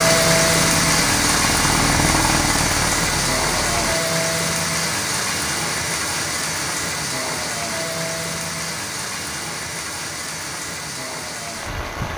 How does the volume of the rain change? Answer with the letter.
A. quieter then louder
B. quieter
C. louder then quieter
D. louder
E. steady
B.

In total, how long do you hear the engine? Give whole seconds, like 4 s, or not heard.
4 s.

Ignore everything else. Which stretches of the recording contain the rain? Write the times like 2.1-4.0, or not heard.
0.0-12.1.